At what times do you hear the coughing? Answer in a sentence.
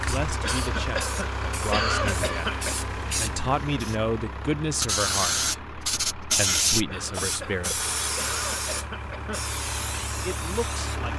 The coughing can be heard from 0.4 to 2.9 s and from 6.8 to 9.5 s.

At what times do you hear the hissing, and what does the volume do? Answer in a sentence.
You can hear the hissing from 0.0 to 11.1 s, getting louder then quieter.